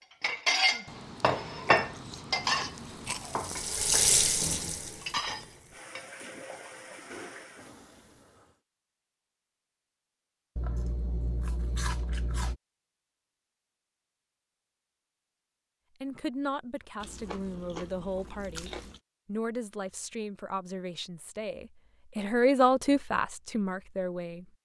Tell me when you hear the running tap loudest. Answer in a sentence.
The volume of the running tap peaks at 4 seconds.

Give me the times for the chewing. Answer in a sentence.
The chewing can be heard from 0.8 to 3.5 s, from 10.6 to 12.6 s and from 17.0 to 19.0 s.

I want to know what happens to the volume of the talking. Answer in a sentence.
The loudness of the talking goes up.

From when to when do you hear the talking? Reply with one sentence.
The talking can be heard from 16.0 to 24.5 s.